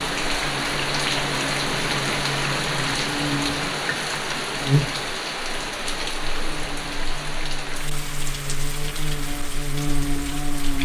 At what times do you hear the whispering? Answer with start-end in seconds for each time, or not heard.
not heard.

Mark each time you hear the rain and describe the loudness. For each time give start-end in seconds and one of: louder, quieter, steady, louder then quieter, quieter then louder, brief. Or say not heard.
0.0-10.8 quieter.